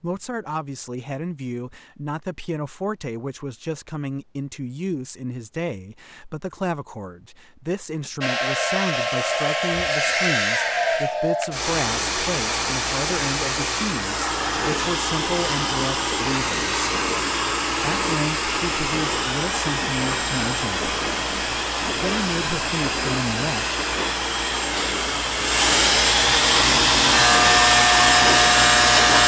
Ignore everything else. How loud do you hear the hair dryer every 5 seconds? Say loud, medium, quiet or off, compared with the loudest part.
off, medium, medium, medium, medium, loud.